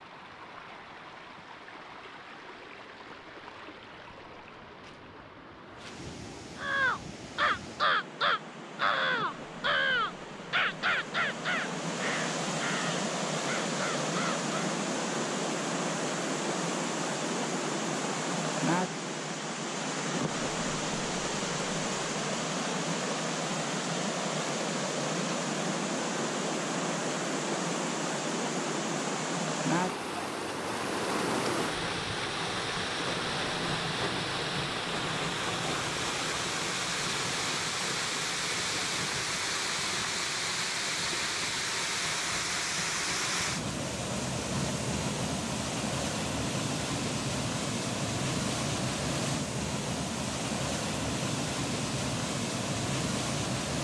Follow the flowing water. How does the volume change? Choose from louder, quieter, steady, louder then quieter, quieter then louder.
louder.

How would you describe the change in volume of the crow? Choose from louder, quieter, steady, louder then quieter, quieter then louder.
quieter.